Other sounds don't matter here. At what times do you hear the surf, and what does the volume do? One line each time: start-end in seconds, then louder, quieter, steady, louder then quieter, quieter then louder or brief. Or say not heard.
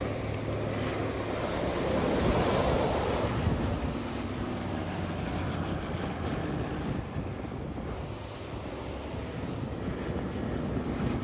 0.0-11.1 quieter.